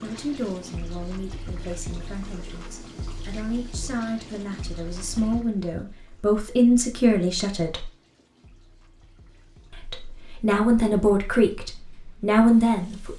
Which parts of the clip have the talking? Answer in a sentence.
You can hear the talking from 0.0 to 7.9 s and from 9.8 to 13.1 s.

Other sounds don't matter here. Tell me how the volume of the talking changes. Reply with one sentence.
The volume of the talking goes up.